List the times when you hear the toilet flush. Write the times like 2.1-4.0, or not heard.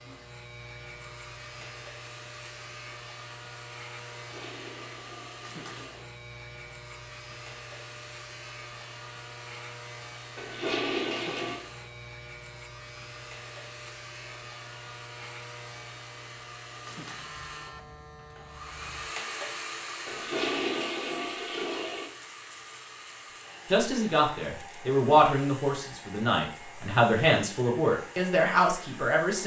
4.2-6.1, 10.3-11.7, 20.1-22.1.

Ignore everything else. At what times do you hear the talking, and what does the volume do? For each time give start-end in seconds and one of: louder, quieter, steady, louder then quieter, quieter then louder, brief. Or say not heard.
23.7-29.4 steady.